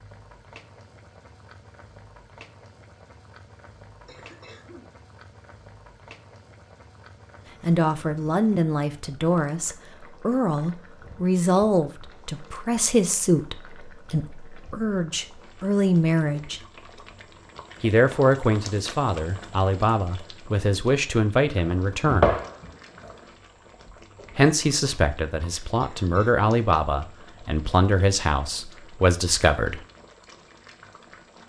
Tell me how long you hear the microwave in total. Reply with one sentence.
You can't hear the microwave here.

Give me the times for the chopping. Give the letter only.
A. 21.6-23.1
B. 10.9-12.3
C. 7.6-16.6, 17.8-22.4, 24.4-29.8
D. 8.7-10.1
A.